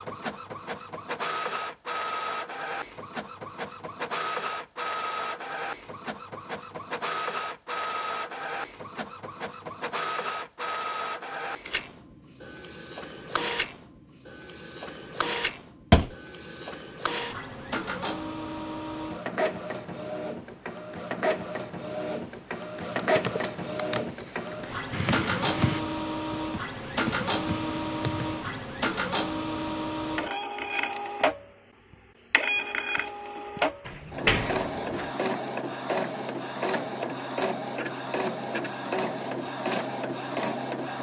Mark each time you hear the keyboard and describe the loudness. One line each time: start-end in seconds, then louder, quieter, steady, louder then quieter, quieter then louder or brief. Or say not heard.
22.9-28.6 louder then quieter.